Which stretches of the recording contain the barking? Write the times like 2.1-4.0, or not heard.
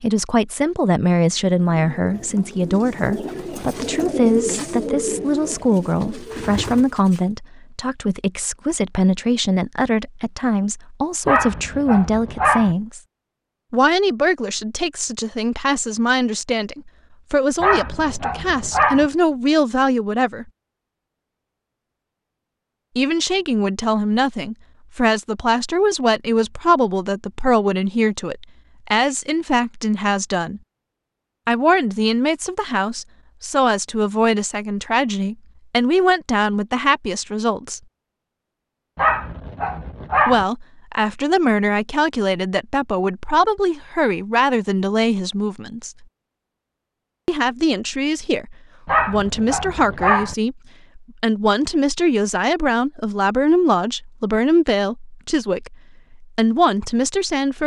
11.2-12.8, 17.6-19.1, 39.0-40.5, 48.9-50.4.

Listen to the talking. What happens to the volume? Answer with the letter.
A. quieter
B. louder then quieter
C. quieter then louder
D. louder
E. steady
E.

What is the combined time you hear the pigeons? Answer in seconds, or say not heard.
6 s.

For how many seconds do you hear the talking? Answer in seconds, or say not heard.
50 s.